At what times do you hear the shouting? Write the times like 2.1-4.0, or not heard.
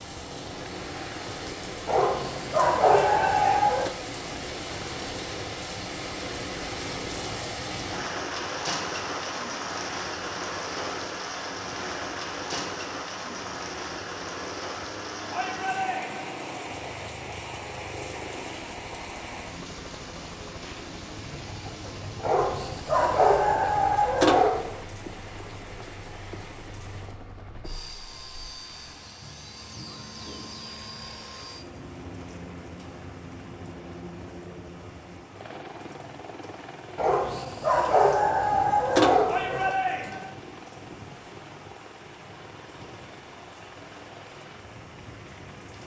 3.1-3.7, 15.3-16.3, 39.2-40.3.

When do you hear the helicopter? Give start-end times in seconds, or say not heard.
0.1-45.8.